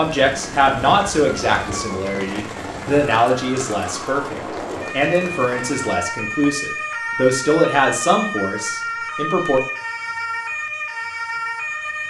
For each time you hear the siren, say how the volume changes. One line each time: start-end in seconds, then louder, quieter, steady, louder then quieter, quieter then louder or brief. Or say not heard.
0.0-12.0 louder.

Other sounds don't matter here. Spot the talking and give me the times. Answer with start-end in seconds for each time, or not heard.
0.0-9.6.